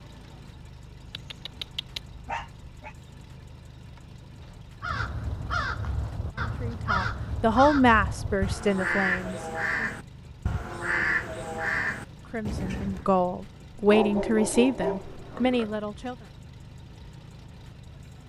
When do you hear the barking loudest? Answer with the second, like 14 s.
14 s.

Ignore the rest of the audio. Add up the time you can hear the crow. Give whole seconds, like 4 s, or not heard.
8 s.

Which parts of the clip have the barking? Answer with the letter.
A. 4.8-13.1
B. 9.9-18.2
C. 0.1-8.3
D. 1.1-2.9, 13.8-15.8
D.